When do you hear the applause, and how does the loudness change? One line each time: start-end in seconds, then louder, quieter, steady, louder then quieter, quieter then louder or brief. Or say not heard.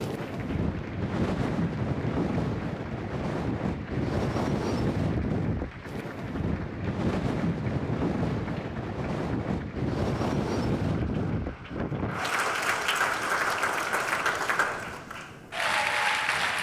0.0-16.5 louder.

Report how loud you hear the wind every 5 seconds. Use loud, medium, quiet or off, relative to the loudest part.
loud, loud, loud, quiet.